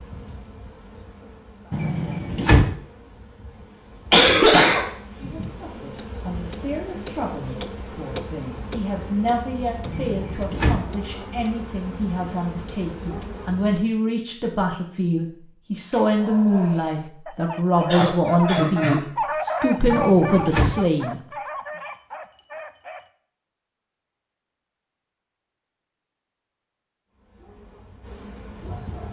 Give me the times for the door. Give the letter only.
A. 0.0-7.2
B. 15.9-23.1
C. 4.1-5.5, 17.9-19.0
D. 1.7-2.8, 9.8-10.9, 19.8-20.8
D.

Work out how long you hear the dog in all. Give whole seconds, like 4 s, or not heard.
7 s.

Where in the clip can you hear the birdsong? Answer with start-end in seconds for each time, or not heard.
not heard.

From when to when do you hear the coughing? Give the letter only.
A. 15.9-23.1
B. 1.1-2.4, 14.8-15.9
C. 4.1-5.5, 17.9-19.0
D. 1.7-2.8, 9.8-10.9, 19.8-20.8
C.